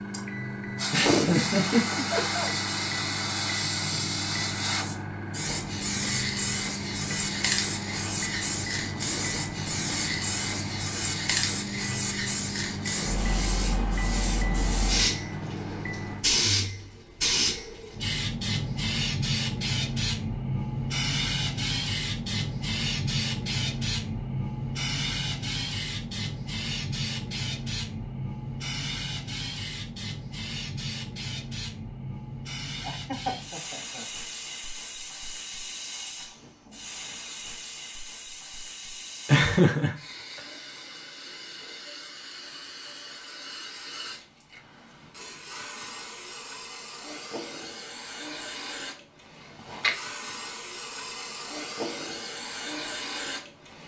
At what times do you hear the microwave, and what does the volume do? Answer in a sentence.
You can hear the microwave from 0.0 to 16.2 s, at a steady volume.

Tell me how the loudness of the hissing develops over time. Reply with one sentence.
The loudness of the hissing goes down.